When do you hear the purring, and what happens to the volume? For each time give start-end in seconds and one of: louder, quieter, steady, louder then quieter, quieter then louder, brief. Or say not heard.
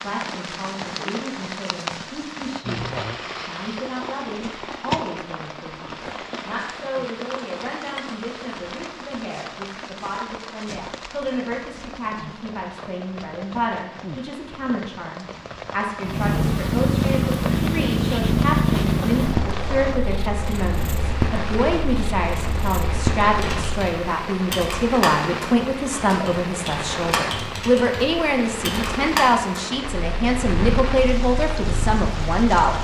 16.0-23.6 quieter
29.9-32.8 brief.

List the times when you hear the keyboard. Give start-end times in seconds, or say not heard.
23.4-29.6.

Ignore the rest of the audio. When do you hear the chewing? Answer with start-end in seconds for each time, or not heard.
not heard.